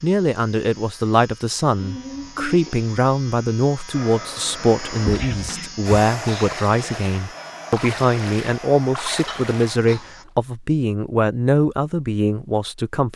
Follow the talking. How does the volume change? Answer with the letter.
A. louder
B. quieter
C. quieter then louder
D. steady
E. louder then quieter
D.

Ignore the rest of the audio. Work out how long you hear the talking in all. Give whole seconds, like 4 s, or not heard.
13 s.